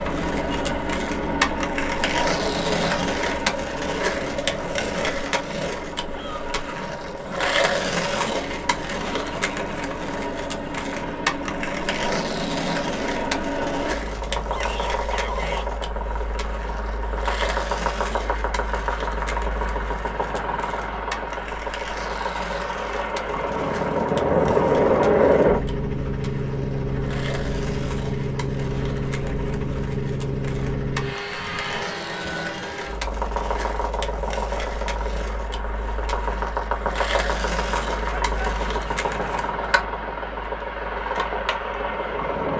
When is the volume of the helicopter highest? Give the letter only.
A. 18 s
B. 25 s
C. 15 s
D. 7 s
B.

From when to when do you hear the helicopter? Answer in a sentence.
You can hear the helicopter from 0.0 to 42.5 s.